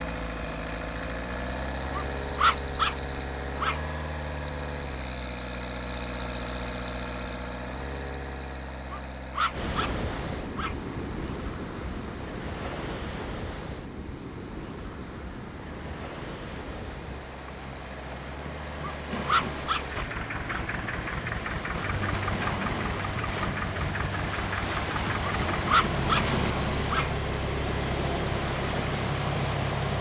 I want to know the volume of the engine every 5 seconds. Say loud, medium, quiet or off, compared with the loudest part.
loud, loud, quiet, medium, loud, loud.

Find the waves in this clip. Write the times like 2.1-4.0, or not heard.
9.5-29.9.